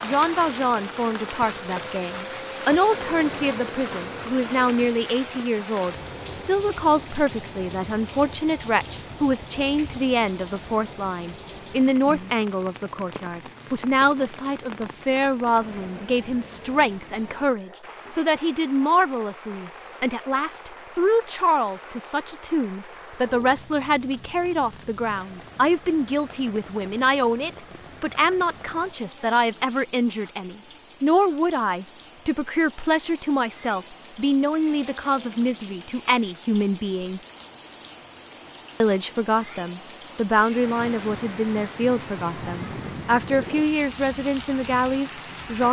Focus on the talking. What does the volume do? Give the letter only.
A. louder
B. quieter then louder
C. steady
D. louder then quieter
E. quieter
C.